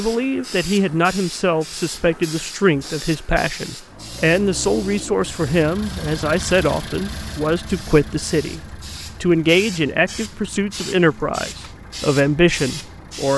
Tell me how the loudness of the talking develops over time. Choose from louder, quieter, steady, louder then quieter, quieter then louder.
steady.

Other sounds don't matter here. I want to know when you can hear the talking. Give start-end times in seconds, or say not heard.
0.0-13.3.